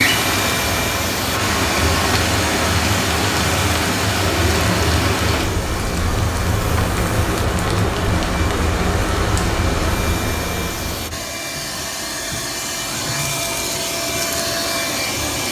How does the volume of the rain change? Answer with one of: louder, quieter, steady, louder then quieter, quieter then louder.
steady.